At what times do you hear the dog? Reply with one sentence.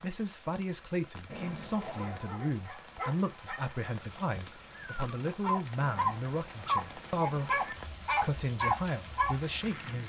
You can hear the dog from 1.8 to 9.3 s.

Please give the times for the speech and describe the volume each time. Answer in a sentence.
The speech can be heard from 0.0 to 10.0 s, at a steady volume.